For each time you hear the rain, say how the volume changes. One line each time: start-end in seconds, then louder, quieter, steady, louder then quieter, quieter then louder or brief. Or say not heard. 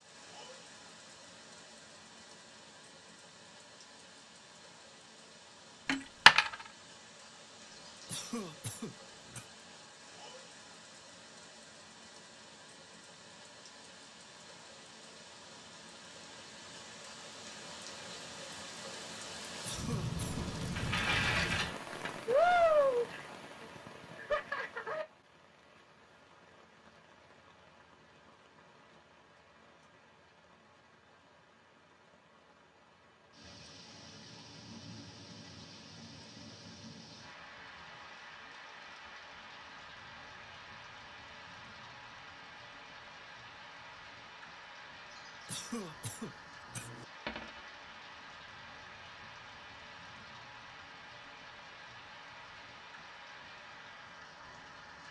0.0-55.0 louder then quieter.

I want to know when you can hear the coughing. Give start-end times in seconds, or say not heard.
7.7-9.4, 19.5-20.4, 45.1-47.0.